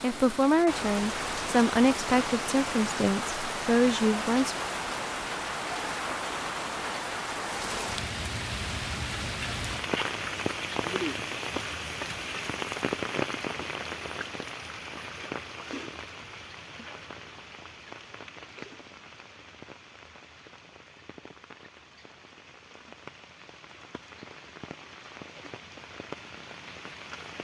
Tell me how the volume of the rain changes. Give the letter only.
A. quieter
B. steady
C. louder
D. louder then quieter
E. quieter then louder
A.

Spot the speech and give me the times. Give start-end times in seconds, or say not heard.
0.0-4.5.